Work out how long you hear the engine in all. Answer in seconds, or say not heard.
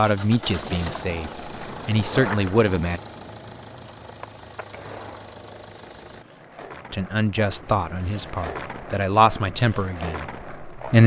6 s.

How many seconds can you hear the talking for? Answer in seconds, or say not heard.
7 s.